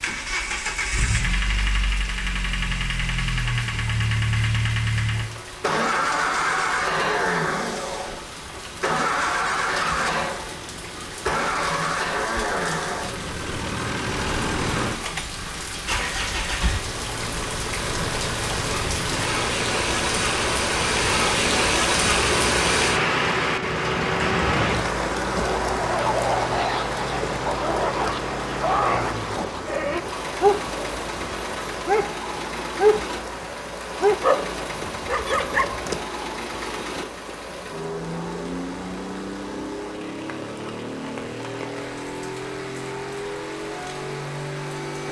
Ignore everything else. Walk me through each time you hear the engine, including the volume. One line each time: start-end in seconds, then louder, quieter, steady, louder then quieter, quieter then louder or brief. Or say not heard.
0.0-45.0 quieter.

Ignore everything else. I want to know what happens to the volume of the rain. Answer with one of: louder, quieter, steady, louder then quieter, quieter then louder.
louder then quieter.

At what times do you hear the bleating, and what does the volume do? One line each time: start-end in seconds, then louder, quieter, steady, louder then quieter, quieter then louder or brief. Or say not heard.
not heard.